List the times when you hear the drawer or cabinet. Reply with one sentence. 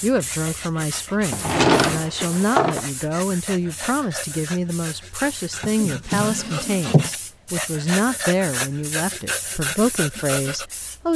The drawer or cabinet can be heard from 1.3 to 2.9 s and from 5.8 to 7.1 s.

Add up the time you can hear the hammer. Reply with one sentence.
The hammer can't be heard in this clip.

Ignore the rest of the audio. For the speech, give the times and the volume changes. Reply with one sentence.
The speech can be heard from 0.0 to 11.1 s, at a steady volume.